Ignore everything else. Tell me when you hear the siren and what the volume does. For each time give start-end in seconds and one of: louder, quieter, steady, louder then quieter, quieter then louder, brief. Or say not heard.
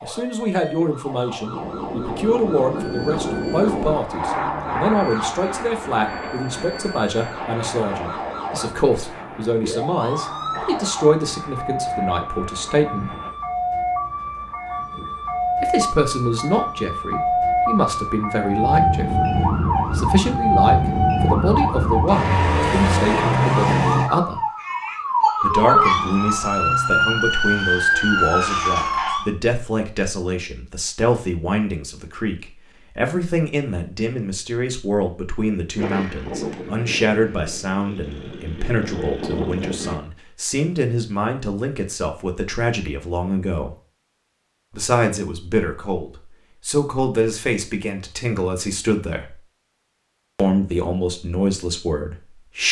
0.0-29.3 louder.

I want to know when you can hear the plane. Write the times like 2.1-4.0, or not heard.
1.5-13.3, 35.8-40.0.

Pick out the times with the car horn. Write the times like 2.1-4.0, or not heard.
not heard.